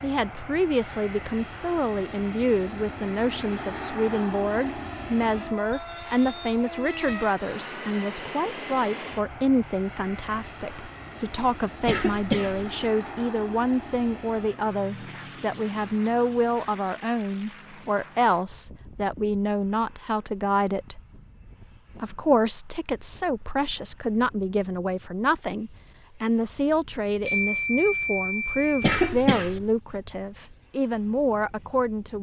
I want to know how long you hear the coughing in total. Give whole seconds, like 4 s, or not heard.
2 s.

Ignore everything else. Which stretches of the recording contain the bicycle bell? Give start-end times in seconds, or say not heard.
5.7-6.5, 27.2-28.9.